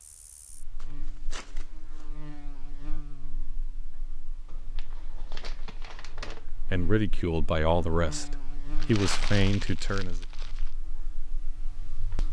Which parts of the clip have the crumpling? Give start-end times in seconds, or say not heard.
0.8-2.0, 4.5-6.5, 8.8-10.7.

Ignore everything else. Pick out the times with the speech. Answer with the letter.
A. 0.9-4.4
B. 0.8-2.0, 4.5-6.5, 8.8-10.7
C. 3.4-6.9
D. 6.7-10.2
D.